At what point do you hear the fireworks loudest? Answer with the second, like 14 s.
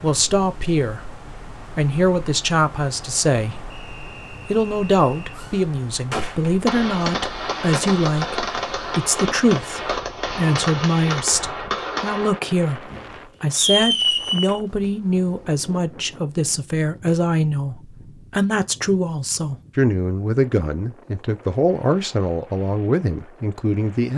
14 s.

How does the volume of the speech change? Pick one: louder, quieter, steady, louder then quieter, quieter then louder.
steady.